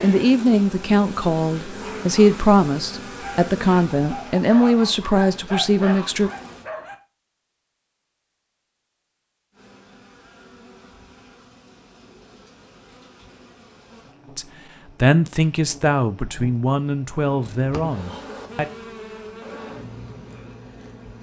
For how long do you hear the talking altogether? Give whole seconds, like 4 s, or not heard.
11 s.